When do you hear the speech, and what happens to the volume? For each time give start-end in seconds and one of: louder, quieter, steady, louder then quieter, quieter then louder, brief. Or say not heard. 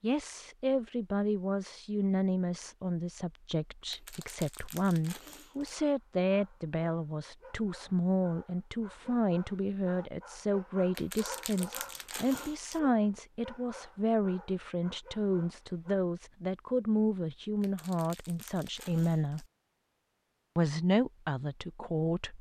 0.0-19.4 steady
20.6-22.3 brief.